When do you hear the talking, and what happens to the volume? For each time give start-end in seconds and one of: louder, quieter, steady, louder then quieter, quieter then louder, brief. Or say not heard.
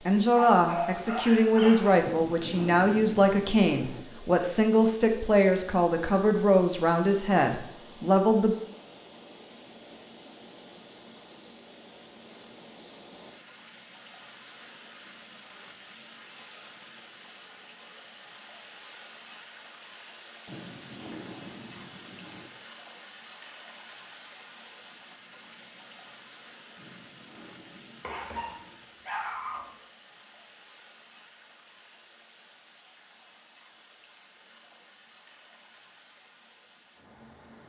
0.1-8.6 steady.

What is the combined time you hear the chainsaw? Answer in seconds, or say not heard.
not heard.